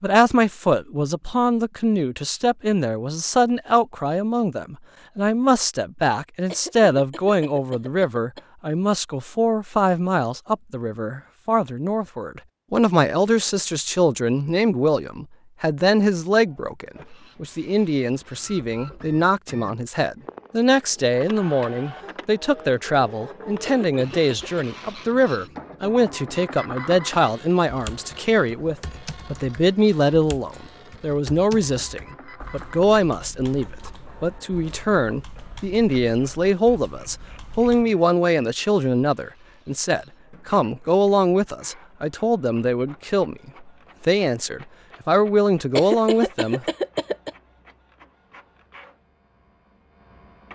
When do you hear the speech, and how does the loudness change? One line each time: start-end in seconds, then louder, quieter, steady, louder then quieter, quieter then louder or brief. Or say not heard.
0.0-46.6 steady.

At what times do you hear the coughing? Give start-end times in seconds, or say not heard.
6.5-8.4, 23.6-24.6, 45.8-47.3.